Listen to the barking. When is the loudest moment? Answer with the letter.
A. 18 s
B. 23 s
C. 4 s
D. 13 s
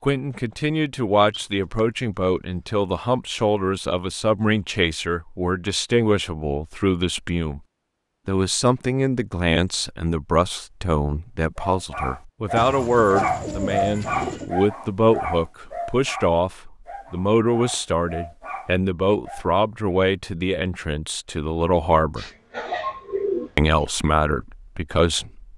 D.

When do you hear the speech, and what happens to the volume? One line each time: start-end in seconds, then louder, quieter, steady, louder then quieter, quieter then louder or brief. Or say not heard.
0.0-7.6 steady
8.2-22.2 steady
23.6-25.5 brief.